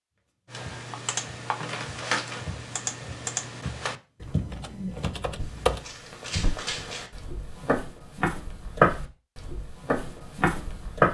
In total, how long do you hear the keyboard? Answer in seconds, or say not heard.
5 s.